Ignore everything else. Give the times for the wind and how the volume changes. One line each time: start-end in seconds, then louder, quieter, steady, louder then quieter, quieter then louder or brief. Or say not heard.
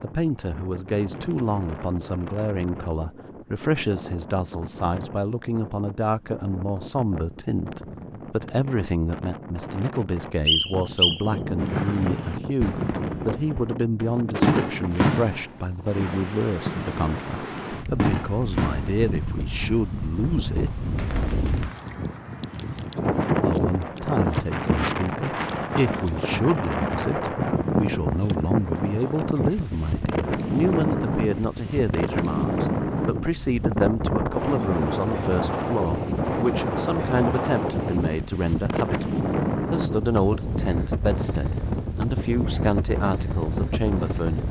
0.0-44.4 louder.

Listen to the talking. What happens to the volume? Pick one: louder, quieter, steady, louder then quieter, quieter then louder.
steady.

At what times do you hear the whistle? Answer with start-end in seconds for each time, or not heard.
10.4-11.2.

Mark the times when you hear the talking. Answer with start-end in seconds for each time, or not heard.
0.0-20.7, 23.4-44.4.